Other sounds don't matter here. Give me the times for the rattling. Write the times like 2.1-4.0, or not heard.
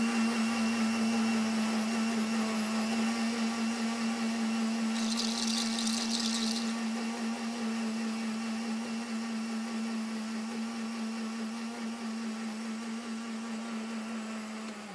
4.9-6.8.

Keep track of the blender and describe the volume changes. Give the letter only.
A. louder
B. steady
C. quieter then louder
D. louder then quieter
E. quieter
E.